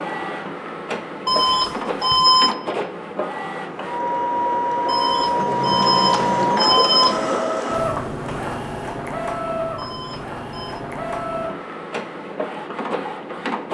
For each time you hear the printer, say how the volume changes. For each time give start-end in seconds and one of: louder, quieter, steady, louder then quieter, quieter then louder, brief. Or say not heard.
0.0-13.6 louder then quieter.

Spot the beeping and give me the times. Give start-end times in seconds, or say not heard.
1.2-2.5, 4.8-7.2, 9.8-10.8.